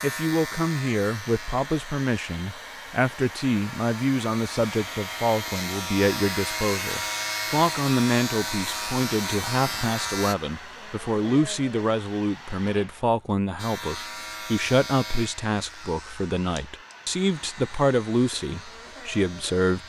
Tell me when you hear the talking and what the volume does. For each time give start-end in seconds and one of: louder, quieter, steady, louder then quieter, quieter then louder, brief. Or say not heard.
0.0-19.8 steady.